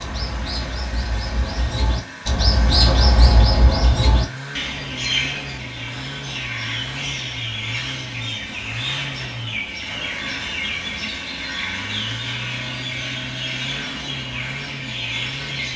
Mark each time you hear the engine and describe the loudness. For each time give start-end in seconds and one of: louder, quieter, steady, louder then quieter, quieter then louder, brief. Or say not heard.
0.0-15.7 steady.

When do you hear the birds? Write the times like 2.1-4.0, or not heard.
0.0-15.7.